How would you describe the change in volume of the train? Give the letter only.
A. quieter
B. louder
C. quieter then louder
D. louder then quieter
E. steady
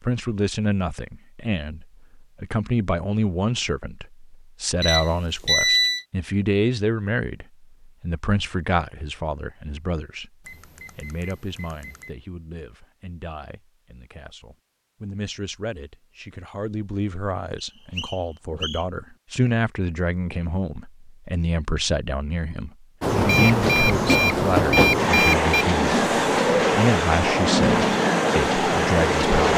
E.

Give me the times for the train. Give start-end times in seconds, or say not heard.
23.0-29.5.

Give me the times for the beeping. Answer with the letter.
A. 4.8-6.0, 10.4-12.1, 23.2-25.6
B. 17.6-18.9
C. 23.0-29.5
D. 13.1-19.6
A.